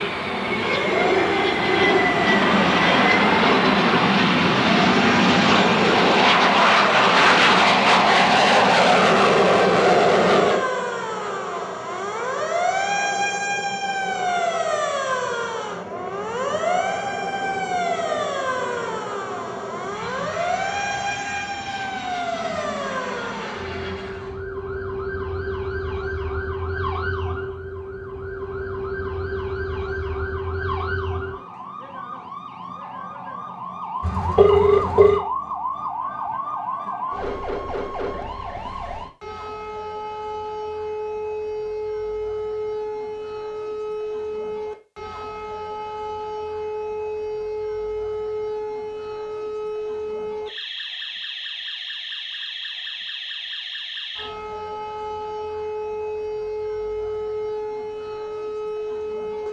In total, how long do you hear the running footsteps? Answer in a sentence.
You can't hear the running footsteps here.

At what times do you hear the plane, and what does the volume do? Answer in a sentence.
You can hear the plane from 0.0 to 24.4 s, getting quieter.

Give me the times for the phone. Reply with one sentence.
You can hear the phone from 34.0 to 35.2 s.